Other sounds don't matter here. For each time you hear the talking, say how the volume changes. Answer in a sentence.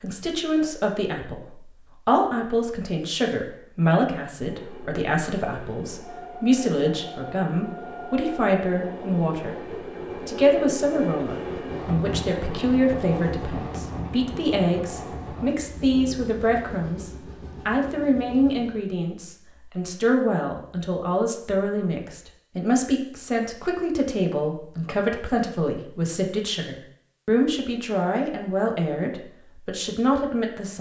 The talking can be heard from 0.0 to 30.7 s, at a steady volume.